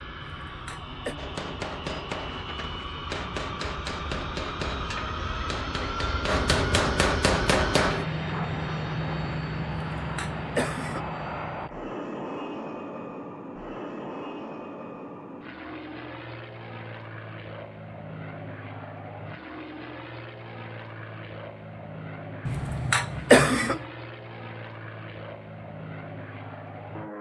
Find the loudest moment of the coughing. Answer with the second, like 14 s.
23 s.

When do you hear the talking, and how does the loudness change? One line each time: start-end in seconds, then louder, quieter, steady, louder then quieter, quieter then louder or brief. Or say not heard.
not heard.